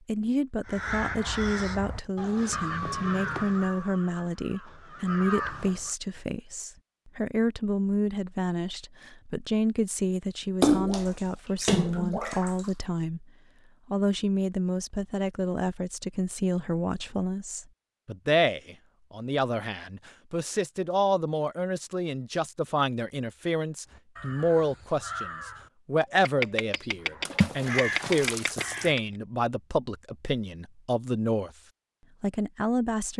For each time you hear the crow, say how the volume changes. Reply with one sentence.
You can hear the crow from 0.7 to 5.9 s, getting quieter then louder; and from 23.9 to 29.0 s, getting louder.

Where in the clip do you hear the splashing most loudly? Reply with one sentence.
The volume of the splashing peaks at 11 seconds.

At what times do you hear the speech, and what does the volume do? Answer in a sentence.
You can hear the speech from 0.1 to 13.2 s, at a steady volume; from 13.9 to 31.5 s, at a steady volume; and briefly from 32.2 to 33.1 s.